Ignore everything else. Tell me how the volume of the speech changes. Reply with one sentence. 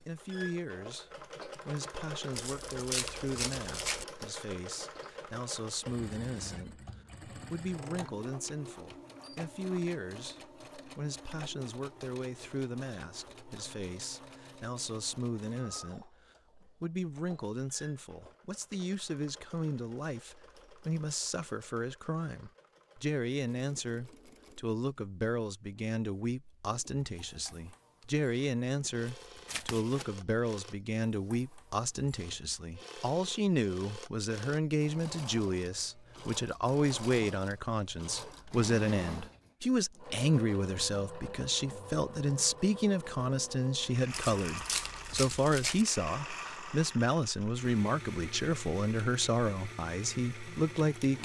The loudness of the speech goes up.